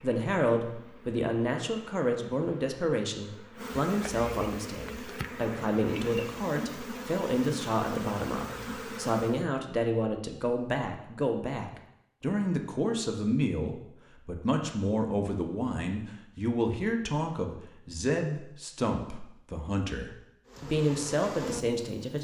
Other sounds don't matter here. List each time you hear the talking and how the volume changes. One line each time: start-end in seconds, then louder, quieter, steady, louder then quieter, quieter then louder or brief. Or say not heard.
0.0-22.1 steady.